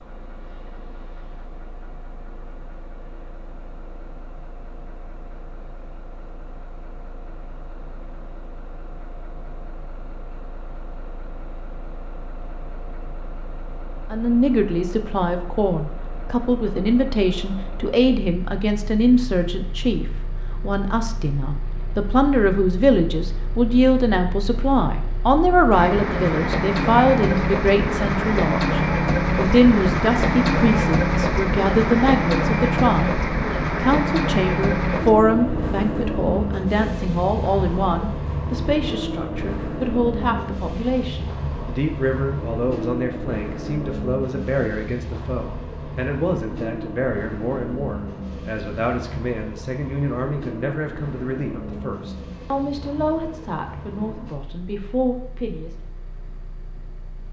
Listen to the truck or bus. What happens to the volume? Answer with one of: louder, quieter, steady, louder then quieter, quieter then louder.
louder then quieter.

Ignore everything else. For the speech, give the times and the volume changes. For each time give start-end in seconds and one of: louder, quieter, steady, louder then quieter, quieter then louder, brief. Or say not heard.
14.1-55.7 quieter.